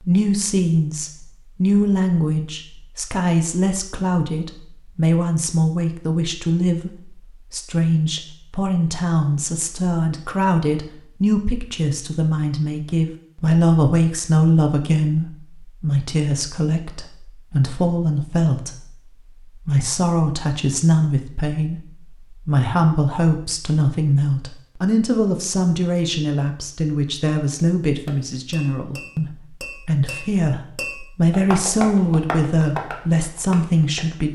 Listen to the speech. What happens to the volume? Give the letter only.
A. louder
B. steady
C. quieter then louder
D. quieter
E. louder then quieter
B.